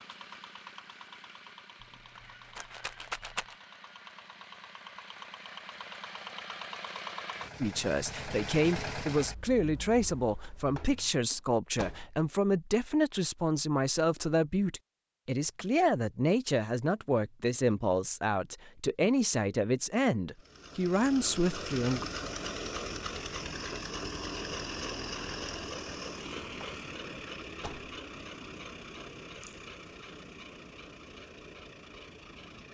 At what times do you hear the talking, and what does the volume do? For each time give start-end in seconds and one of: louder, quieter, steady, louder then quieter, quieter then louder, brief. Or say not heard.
7.6-22.1 steady.